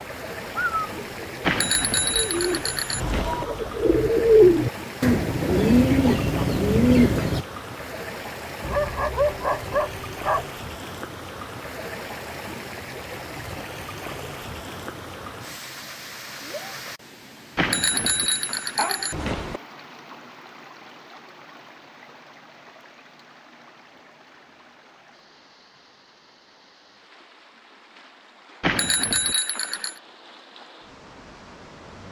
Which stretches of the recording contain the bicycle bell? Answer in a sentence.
You can hear the bicycle bell from 1.4 to 3.5 s, from 17.6 to 19.6 s and from 28.6 to 30.0 s.